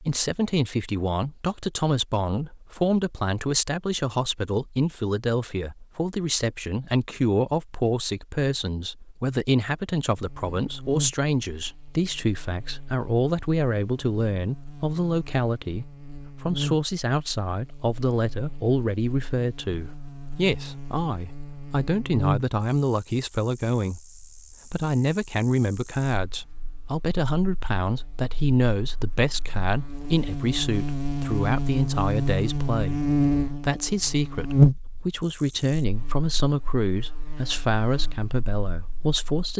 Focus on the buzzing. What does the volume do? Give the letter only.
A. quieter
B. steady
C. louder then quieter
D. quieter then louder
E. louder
E.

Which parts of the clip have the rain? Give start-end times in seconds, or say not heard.
not heard.